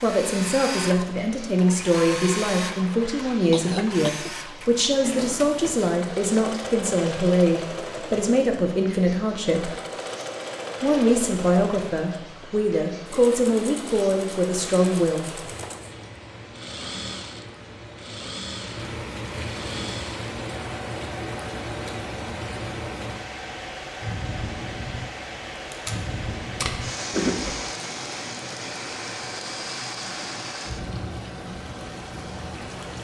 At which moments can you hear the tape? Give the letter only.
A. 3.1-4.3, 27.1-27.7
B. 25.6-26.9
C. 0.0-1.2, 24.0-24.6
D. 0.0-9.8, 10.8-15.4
B.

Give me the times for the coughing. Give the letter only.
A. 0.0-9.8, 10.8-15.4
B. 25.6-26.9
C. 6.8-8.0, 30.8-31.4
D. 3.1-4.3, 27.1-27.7
D.